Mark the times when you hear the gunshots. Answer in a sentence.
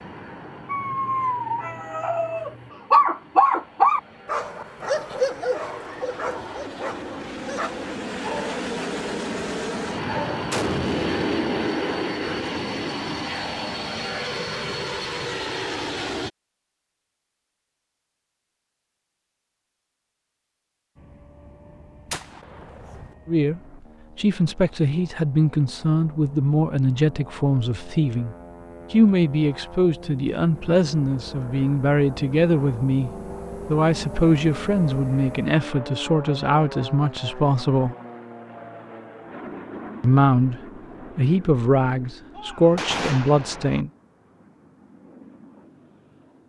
You can hear the gunshots from 9.9 to 12.4 s, from 22.1 to 23.1 s and from 42.4 to 43.9 s.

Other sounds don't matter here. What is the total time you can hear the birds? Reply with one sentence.
You can't hear the birds here.